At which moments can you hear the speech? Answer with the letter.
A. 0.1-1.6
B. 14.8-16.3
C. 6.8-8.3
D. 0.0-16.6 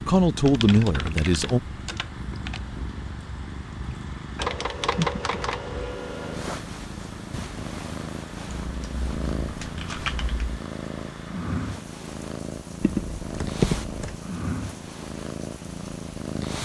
A.